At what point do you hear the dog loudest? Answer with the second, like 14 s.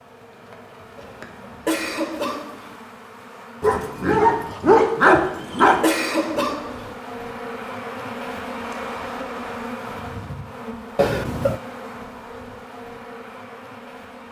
5 s.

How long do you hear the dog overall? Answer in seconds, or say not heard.
2 s.